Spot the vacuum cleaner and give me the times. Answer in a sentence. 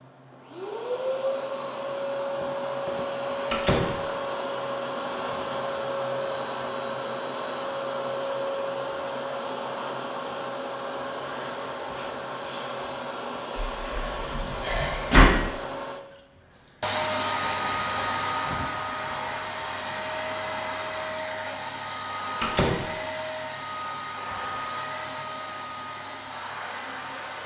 The vacuum cleaner can be heard from 0.0 to 27.4 s.